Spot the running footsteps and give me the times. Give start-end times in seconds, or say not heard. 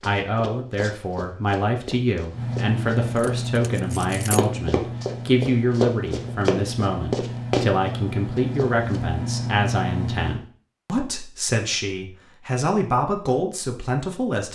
0.0-7.8, 8.3-9.0.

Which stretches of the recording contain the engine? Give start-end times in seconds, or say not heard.
2.3-10.4.